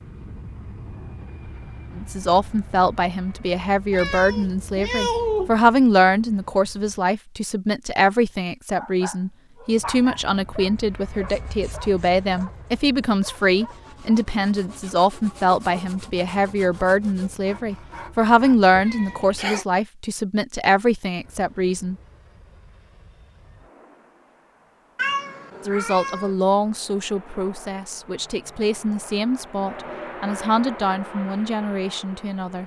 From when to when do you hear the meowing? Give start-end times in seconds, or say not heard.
3.9-5.6, 18.8-19.6, 24.9-26.4.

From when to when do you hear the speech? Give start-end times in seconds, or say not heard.
1.9-21.9, 25.6-32.6.